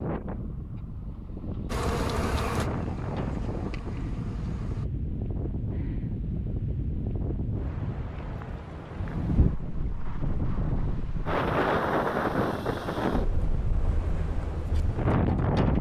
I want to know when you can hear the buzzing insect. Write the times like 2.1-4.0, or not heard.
1.6-4.9.